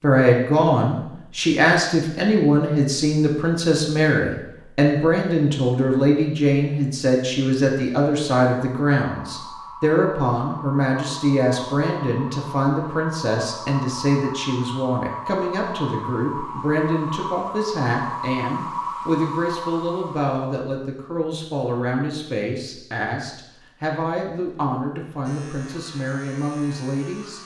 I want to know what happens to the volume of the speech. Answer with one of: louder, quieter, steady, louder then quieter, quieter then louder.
quieter.